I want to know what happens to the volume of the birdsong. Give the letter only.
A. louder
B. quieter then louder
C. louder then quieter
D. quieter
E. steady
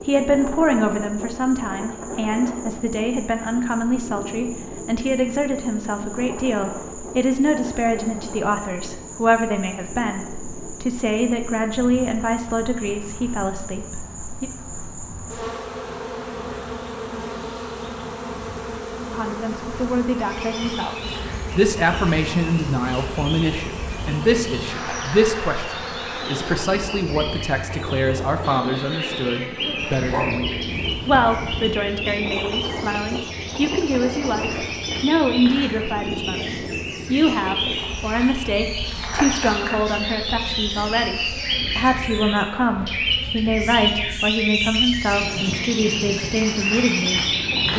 A.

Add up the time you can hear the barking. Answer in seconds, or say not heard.
2 s.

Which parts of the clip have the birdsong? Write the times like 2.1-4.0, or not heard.
20.1-47.7.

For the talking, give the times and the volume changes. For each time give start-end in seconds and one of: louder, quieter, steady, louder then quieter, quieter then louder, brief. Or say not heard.
0.1-14.5 steady
19.1-47.7 steady.